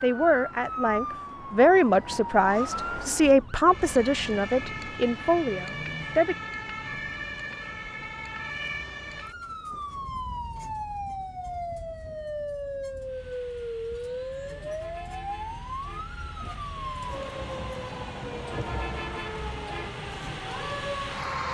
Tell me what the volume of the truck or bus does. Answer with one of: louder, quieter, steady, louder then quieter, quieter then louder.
louder.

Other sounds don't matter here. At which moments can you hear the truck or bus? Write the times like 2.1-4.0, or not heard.
12.9-21.4.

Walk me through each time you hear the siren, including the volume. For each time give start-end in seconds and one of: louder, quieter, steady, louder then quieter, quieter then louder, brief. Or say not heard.
0.0-21.4 steady.